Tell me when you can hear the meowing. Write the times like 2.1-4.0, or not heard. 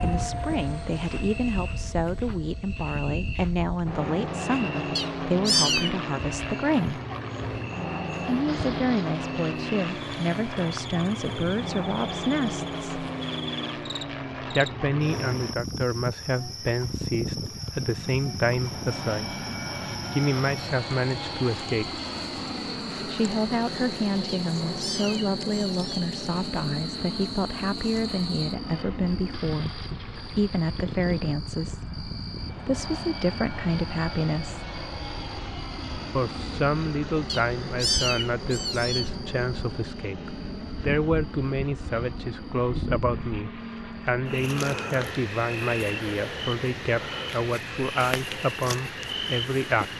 5.0-6.0, 24.2-26.1, 37.2-39.1.